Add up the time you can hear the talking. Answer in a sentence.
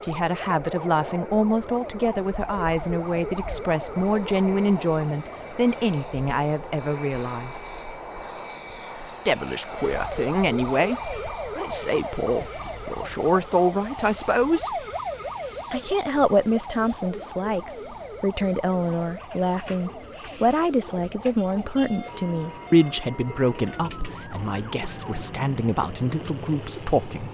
The talking can be heard for 25 seconds in total.